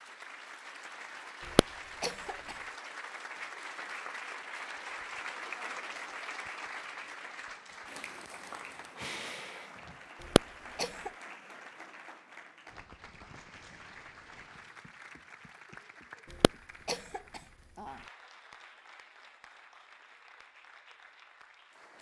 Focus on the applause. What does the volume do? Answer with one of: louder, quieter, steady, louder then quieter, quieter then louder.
quieter.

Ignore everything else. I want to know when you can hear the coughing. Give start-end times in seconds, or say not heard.
1.6-2.5, 10.3-11.1, 16.4-17.9.